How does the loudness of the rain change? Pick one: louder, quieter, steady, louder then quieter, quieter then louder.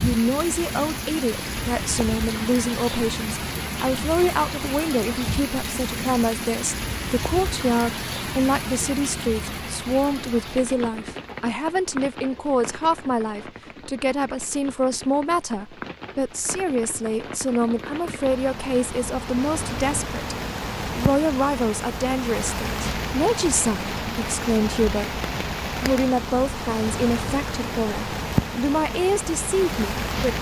quieter then louder.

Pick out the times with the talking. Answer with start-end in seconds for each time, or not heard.
0.0-30.3.